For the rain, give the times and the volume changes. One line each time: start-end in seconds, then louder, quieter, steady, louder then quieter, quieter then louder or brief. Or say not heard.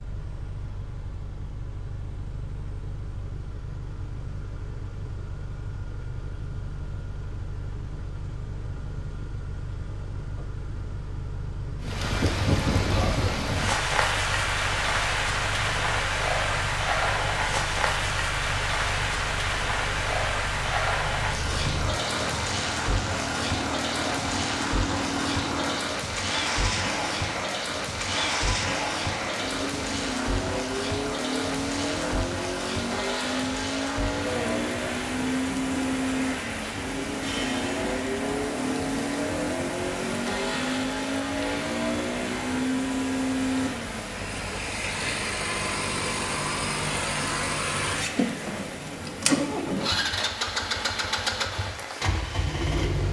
11.8-53.0 quieter.